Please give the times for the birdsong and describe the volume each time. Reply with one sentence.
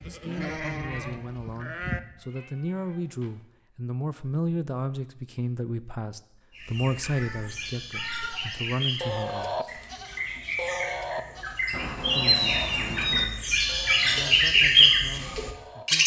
You can hear the birdsong from 6.5 to 16.0 s, getting louder.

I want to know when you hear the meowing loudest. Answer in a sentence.
The loudest moment of the meowing is at 12 seconds.